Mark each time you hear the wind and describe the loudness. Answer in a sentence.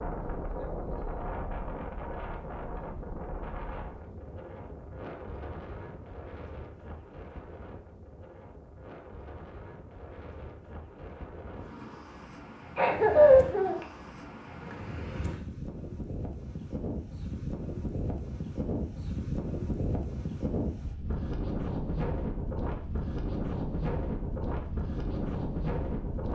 You can hear the wind from 0.0 to 26.3 s, getting quieter then louder.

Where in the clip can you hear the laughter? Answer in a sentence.
You can hear the laughter from 12.8 to 13.8 s.